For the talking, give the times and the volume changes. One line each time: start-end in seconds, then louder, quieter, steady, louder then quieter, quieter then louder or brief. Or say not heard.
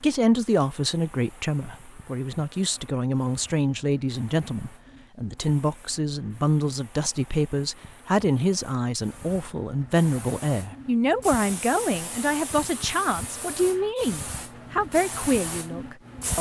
0.0-16.3 steady.